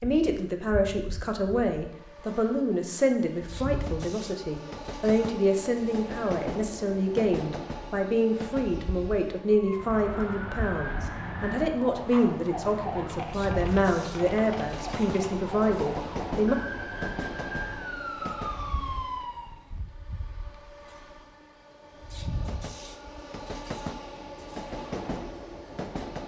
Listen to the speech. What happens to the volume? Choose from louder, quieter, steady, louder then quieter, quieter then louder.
steady.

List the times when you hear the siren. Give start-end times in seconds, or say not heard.
9.4-19.6.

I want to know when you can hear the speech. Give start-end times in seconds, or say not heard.
0.0-16.6.